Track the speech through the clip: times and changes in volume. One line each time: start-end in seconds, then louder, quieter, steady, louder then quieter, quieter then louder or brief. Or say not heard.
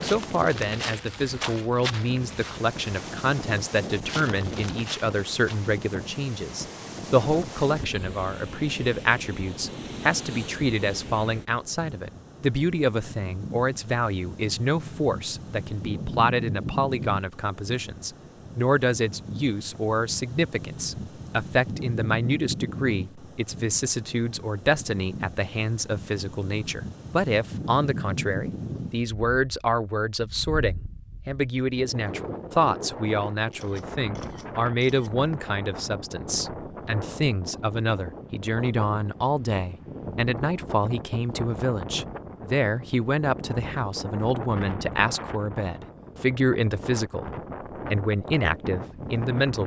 0.0-47.2 steady
47.9-49.6 brief.